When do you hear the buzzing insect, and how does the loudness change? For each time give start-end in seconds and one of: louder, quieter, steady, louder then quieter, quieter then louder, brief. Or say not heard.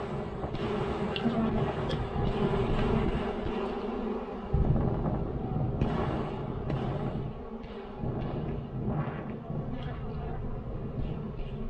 0.0-11.6 quieter.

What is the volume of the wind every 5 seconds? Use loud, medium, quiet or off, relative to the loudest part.
loud, loud, medium.